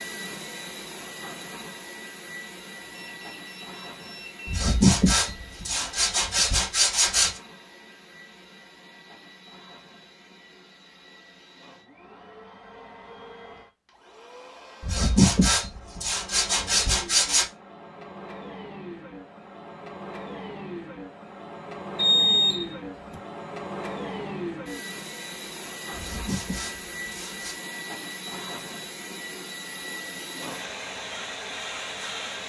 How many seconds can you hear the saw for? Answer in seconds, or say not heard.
7 s.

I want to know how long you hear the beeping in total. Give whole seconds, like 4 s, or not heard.
3 s.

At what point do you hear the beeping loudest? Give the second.
22 s.